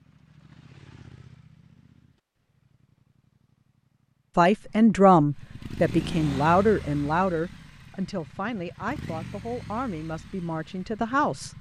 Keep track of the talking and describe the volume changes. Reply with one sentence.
The volume of the talking goes down.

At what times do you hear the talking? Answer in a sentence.
You can hear the talking from 4.3 to 11.5 s.